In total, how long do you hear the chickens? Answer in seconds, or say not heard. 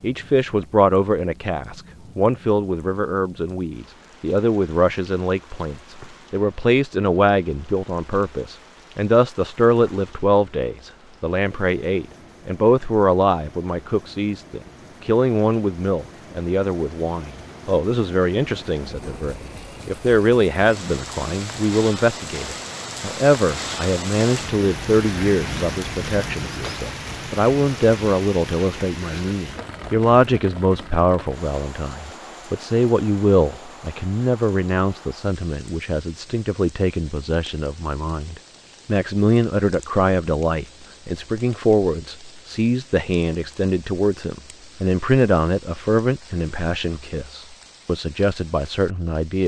not heard.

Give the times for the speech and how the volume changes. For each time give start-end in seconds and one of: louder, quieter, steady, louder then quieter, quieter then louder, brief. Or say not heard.
0.0-49.4 steady.